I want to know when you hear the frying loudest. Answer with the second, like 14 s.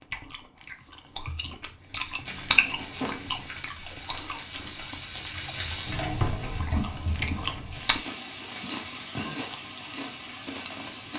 6 s.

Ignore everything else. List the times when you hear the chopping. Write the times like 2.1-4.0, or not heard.
not heard.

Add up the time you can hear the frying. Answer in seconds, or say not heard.
9 s.